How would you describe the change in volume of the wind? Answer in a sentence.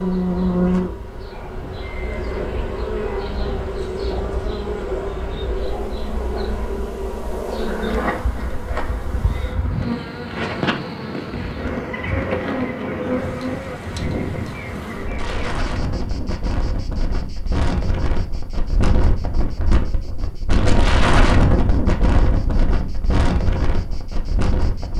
The loudness of the wind goes up.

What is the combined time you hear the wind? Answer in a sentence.
You can hear the wind for 25 seconds altogether.